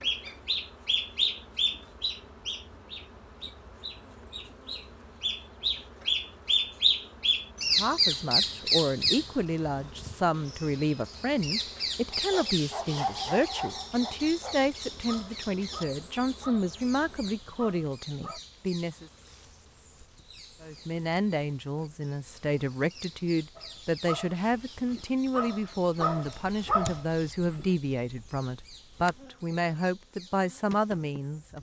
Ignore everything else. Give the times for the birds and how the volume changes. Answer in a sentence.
The birds can be heard from 0.0 to 31.5 s, getting quieter.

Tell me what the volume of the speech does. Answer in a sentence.
The loudness of the speech stays about the same.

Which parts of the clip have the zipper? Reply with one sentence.
You can't hear the zipper here.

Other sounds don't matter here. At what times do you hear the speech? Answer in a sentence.
The speech can be heard from 7.8 to 19.1 s and from 20.6 to 31.5 s.